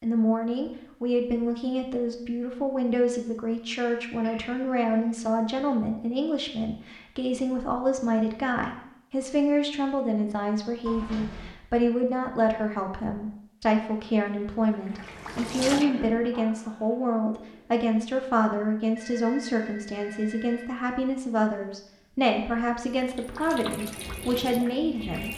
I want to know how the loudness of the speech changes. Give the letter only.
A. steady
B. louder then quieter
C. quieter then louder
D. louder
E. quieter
A.